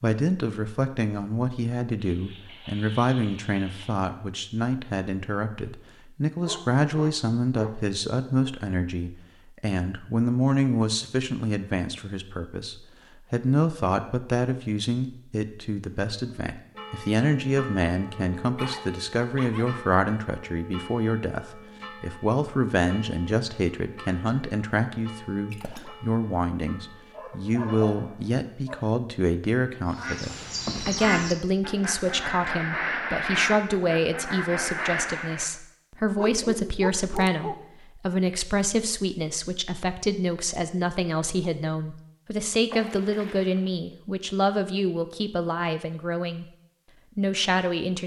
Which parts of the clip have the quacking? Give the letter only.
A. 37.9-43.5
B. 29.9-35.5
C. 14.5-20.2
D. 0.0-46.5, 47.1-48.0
B.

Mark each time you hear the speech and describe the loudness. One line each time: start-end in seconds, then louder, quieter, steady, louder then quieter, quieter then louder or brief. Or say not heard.
0.0-46.5 steady
47.1-48.0 brief.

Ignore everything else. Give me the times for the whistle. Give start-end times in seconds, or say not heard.
not heard.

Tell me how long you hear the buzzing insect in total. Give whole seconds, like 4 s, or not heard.
not heard.